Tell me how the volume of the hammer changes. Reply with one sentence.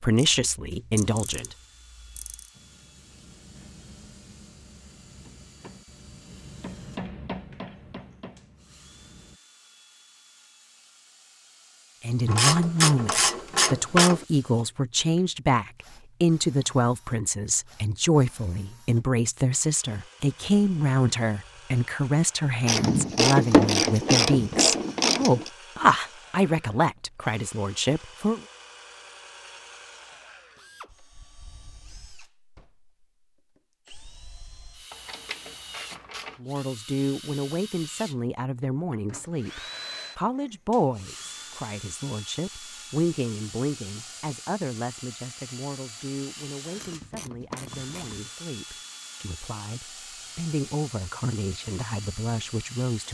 The loudness of the hammer goes up, then down.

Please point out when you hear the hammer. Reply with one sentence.
You can hear the hammer from 2.5 to 9.4 s.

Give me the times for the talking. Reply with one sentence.
You can hear the talking from 0.0 to 1.6 s, from 12.0 to 28.4 s and from 36.4 to 53.0 s.